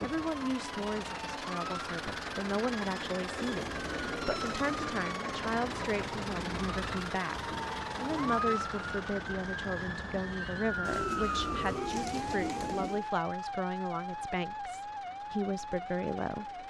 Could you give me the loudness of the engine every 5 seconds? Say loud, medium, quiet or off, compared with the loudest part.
loud, loud, quiet, quiet.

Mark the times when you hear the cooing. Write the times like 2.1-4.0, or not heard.
3.4-4.8, 10.8-13.1.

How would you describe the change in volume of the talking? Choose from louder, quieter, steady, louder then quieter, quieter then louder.
steady.